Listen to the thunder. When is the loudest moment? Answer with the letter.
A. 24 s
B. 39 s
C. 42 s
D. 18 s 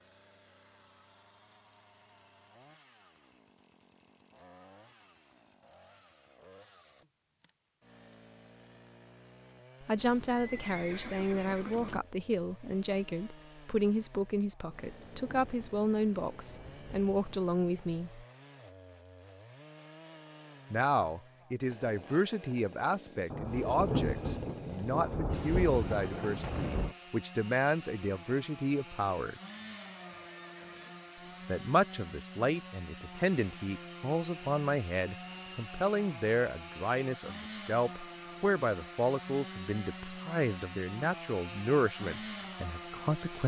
A.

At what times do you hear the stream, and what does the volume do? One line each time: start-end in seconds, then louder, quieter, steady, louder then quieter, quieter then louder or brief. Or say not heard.
not heard.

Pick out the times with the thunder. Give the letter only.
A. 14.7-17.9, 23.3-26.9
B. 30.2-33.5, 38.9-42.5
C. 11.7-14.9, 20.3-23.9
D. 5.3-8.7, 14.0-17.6
A.